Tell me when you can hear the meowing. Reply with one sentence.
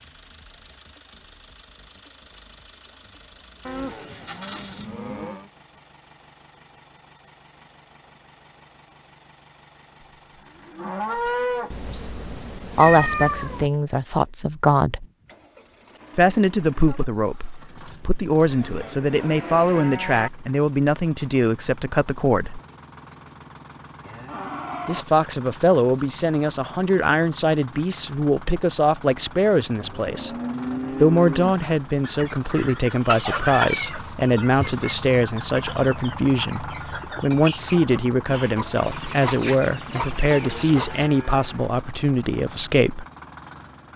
The meowing can be heard from 11.7 to 13.7 s and from 33.4 to 34.9 s.